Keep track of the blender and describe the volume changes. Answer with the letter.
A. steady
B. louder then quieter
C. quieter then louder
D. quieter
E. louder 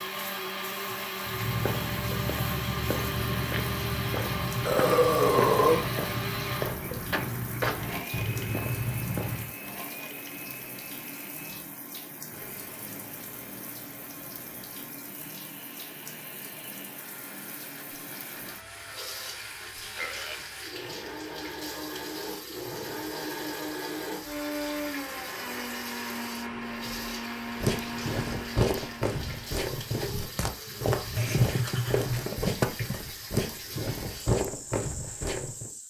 C.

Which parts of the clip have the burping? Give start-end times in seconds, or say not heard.
4.7-5.9, 18.4-19.4, 19.9-20.4, 31.1-32.3.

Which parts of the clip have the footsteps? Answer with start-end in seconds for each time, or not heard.
1.2-9.6, 27.6-35.7.